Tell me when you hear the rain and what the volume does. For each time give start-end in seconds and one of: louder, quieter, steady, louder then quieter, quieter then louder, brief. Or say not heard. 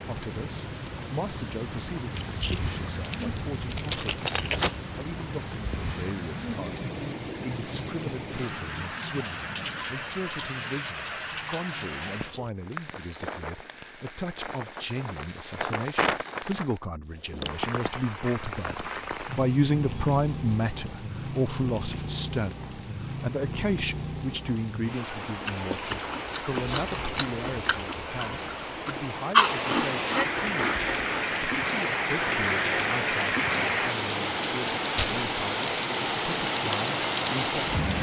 0.0-37.9 louder.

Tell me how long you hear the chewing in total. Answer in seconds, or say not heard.
6 s.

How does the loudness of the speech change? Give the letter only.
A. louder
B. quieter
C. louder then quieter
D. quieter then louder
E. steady
C.